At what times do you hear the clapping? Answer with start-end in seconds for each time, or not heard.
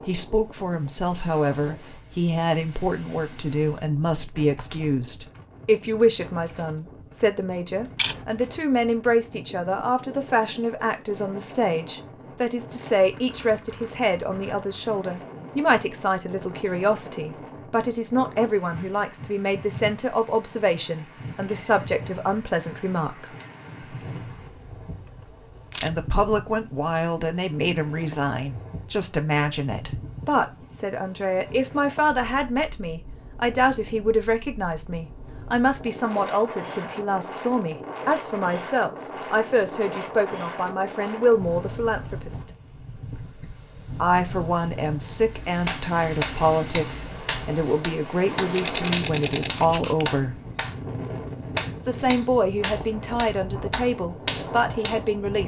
45.6-50.8, 51.5-55.0.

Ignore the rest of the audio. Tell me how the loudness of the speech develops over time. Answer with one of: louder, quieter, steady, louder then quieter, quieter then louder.
steady.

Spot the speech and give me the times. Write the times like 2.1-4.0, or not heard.
0.1-23.2, 25.8-42.5, 44.0-50.4, 51.9-55.4.